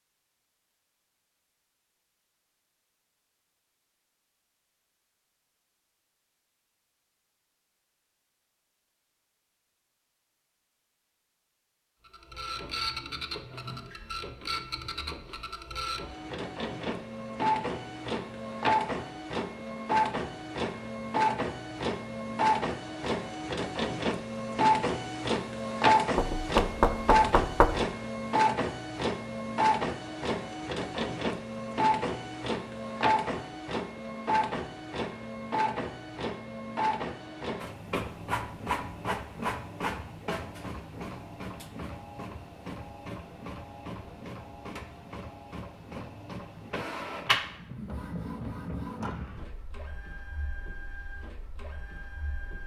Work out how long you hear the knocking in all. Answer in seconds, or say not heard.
2 s.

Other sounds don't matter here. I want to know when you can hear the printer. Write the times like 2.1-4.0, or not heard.
12.1-52.6.